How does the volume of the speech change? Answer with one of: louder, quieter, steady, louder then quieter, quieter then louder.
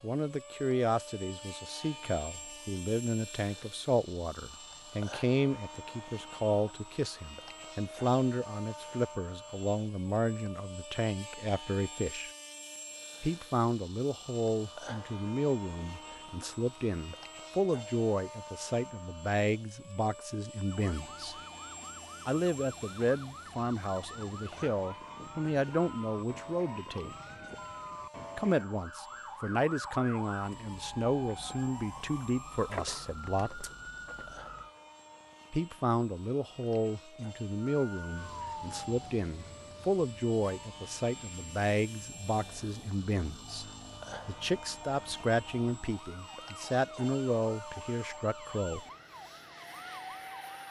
steady.